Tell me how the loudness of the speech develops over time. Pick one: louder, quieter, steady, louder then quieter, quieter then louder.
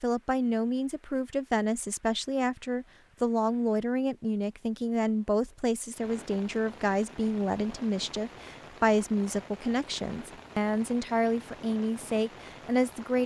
steady.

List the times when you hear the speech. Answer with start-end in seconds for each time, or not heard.
0.0-13.2.